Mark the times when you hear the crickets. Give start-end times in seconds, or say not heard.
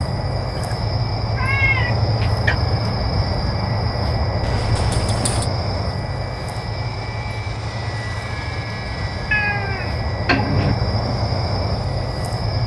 0.0-12.6.